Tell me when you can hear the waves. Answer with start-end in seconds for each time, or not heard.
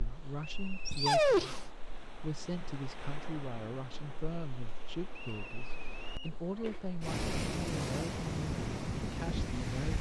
0.0-9.9.